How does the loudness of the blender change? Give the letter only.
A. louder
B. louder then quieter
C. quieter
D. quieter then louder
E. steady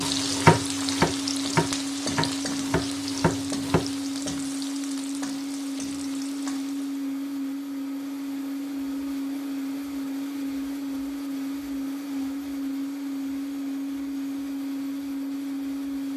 E.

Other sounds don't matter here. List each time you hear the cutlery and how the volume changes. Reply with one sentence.
The cutlery can't be heard in this clip.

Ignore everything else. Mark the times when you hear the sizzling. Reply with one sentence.
The sizzling can be heard from 0.0 to 7.0 s.